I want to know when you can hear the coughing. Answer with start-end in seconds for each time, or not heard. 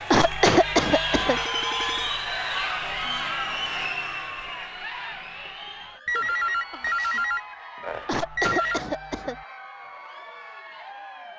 0.1-1.4, 8.1-9.4.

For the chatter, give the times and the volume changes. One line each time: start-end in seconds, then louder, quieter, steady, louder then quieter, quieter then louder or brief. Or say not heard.
0.0-11.3 quieter.